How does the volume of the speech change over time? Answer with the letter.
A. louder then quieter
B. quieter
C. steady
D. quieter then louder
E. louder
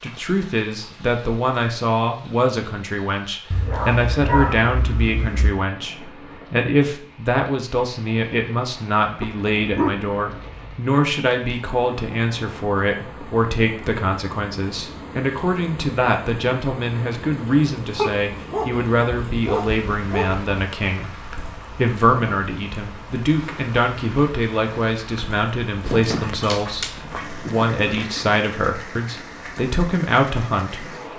C.